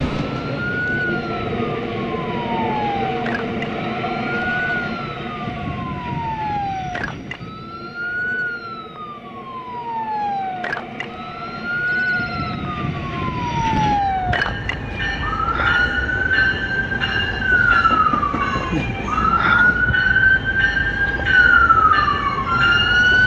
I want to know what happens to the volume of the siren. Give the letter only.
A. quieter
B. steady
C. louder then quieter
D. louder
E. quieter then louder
D.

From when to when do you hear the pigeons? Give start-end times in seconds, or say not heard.
not heard.